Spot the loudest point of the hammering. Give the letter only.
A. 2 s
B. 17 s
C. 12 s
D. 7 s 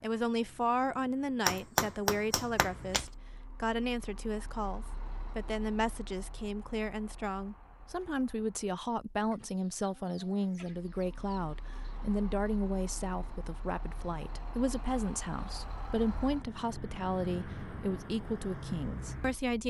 A.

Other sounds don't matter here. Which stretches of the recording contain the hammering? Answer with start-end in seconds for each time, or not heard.
1.4-3.0.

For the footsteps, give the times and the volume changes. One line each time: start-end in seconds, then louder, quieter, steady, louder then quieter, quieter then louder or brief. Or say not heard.
not heard.